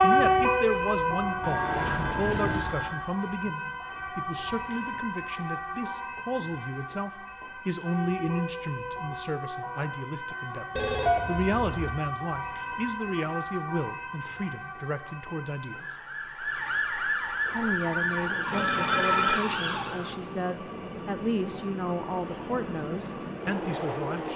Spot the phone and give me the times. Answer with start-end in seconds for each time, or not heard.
1.4-3.0, 10.8-11.9, 18.5-19.4.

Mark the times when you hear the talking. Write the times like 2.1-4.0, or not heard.
0.0-15.8, 17.5-24.3.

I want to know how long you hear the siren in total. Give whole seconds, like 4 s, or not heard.
20 s.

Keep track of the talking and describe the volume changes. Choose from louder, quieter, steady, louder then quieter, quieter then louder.
steady.